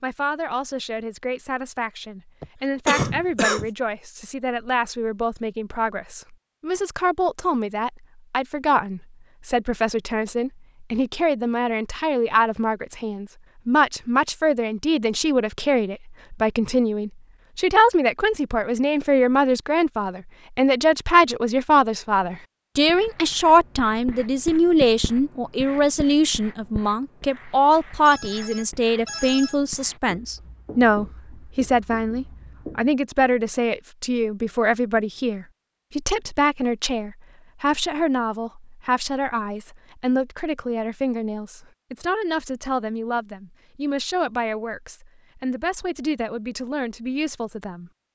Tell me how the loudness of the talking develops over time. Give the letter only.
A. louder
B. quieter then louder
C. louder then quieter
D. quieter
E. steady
C.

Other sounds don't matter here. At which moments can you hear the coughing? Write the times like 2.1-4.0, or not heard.
2.4-3.7.